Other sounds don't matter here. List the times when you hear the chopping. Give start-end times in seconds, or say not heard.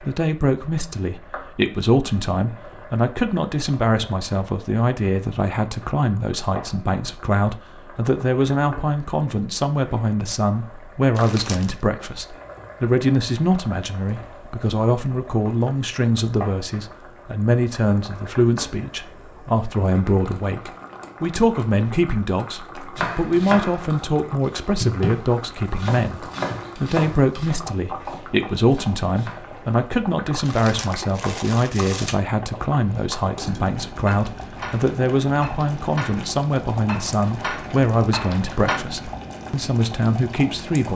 22.9-29.4.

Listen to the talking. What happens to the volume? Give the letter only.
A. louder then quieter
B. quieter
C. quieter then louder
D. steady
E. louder
D.